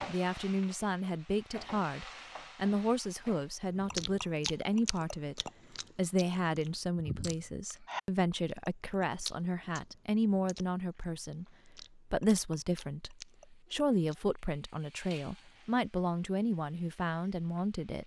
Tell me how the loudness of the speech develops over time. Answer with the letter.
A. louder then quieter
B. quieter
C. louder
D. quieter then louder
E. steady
E.